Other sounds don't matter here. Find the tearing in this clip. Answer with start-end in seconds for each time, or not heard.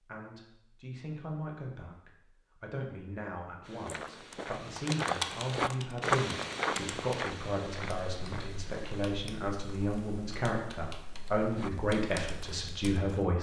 not heard.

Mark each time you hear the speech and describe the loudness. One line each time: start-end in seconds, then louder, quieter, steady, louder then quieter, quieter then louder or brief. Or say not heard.
0.0-13.3 louder.